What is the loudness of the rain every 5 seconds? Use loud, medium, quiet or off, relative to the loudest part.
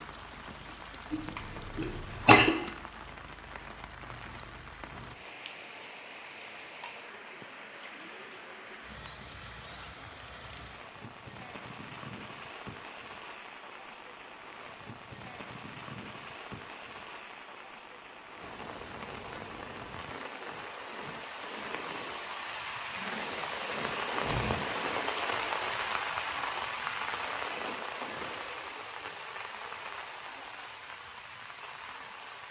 medium, medium, medium, medium, loud, loud, medium.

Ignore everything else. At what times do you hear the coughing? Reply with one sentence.
You can hear the coughing from 1.1 to 2.5 s.